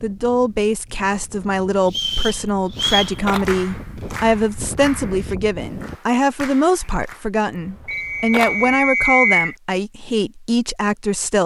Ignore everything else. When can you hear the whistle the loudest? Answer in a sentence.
The loudest moment of the whistle is at 9 seconds.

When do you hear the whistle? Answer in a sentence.
The whistle can be heard from 1.9 to 3.1 s and from 7.8 to 9.6 s.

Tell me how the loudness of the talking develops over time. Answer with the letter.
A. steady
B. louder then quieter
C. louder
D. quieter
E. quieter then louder
A.